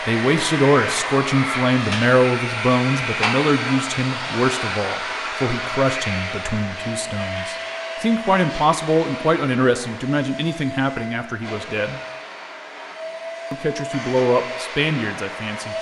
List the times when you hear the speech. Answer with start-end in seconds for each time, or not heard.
0.1-12.0, 13.5-15.7.